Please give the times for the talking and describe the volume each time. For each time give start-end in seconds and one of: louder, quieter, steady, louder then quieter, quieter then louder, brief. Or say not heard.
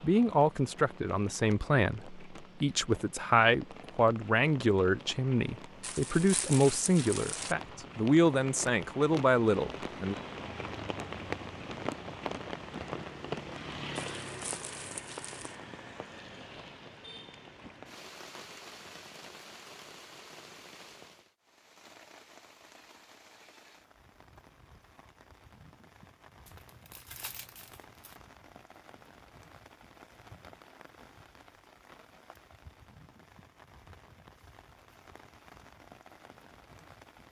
0.0-10.2 steady.